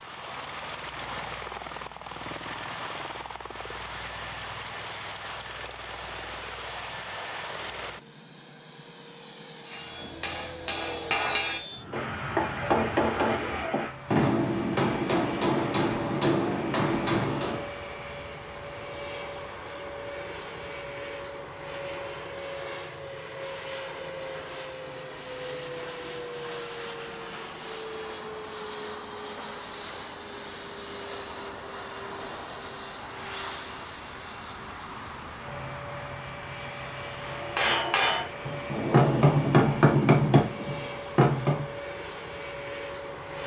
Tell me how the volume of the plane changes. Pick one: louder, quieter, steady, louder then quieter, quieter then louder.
steady.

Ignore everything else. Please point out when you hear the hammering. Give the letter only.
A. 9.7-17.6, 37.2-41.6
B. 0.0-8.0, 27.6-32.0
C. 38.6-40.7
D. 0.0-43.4
A.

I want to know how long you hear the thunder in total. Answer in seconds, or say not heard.
2 s.